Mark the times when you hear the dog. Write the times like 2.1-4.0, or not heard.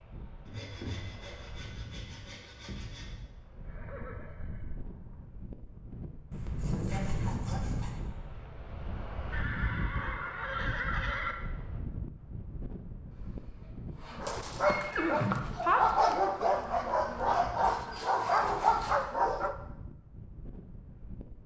14.2-19.6.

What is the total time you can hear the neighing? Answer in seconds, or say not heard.
5 s.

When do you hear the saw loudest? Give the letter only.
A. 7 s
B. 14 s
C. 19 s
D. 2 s
A.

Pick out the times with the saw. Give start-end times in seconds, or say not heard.
0.5-3.0, 6.3-8.0, 13.1-14.3, 17.6-19.1.